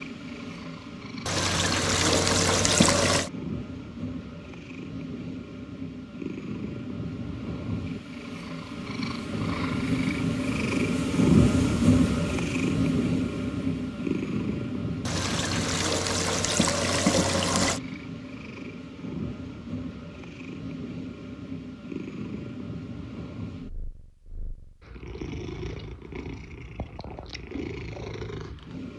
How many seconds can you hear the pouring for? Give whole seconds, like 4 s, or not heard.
5 s.